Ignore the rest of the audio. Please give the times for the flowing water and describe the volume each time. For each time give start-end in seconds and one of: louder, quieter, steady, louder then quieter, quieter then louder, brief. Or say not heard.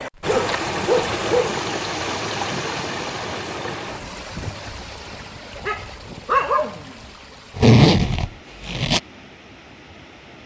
0.0-10.4 quieter.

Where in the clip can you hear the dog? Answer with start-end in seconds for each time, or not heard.
0.2-1.6, 5.6-6.9.